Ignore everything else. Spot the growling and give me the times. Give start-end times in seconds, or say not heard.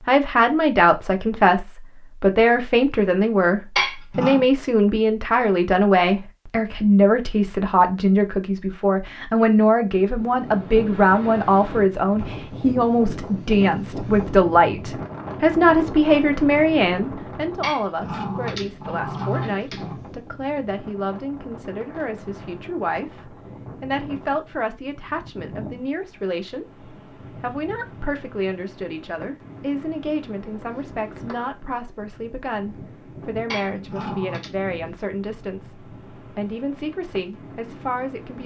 3.8-4.5, 17.6-19.9, 33.5-34.5.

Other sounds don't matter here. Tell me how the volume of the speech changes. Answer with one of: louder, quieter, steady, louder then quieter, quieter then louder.
quieter.